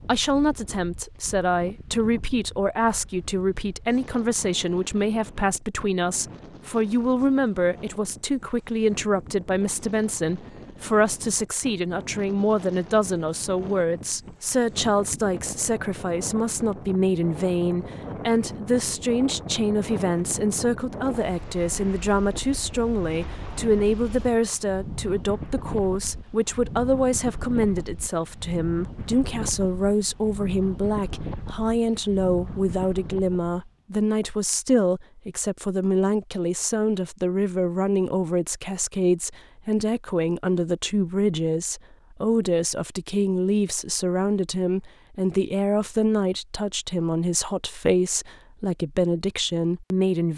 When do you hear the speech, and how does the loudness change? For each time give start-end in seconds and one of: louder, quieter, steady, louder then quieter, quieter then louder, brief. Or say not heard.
0.1-50.3 steady.